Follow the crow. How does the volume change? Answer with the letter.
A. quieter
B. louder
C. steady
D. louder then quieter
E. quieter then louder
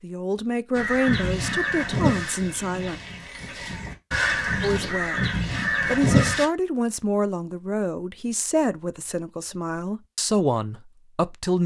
E.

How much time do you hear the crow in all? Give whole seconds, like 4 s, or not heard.
6 s.